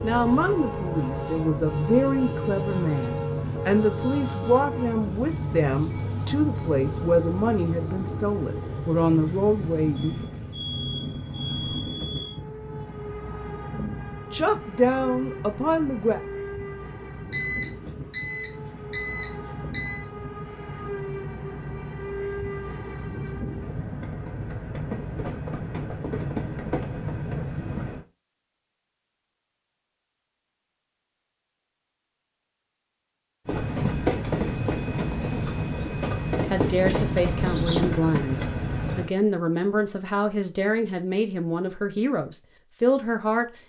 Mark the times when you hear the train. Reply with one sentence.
The train can be heard from 0.0 to 28.1 s and from 33.5 to 39.1 s.